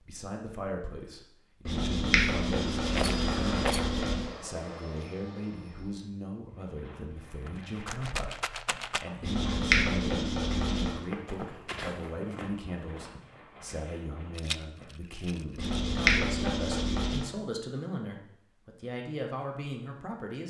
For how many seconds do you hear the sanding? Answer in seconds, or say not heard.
6 s.